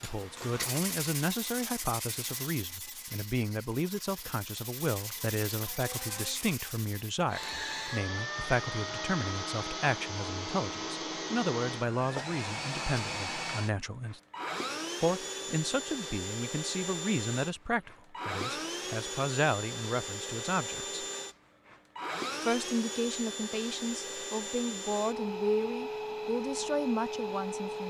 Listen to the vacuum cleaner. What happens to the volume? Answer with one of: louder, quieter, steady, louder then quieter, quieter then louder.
steady.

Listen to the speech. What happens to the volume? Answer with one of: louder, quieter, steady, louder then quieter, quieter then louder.
steady.